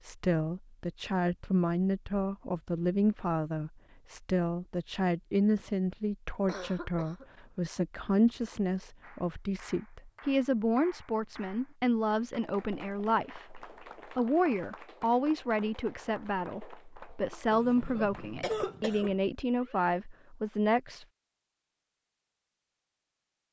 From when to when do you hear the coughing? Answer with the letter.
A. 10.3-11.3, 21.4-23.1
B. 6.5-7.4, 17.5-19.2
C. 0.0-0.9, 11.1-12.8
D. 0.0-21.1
B.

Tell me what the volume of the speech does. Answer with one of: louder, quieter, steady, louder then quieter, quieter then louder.
steady.